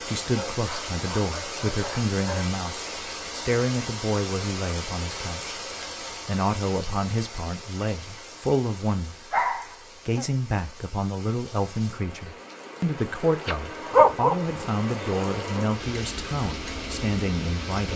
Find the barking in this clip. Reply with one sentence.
The barking can be heard from 0.1 to 2.6 s, from 9.3 to 10.3 s and from 13.4 to 14.3 s.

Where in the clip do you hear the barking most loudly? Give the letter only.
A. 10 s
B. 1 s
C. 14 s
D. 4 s
C.